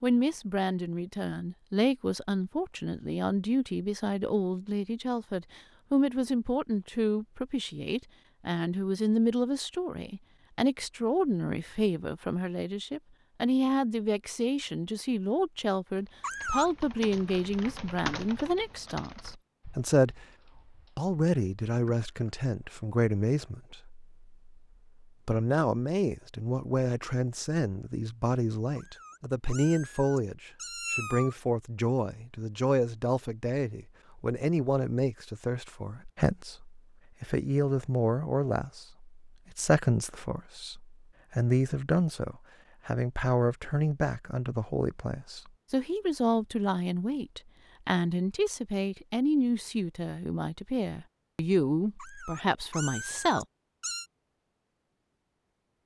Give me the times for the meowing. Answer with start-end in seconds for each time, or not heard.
16.2-17.0, 28.8-31.4, 52.0-54.0.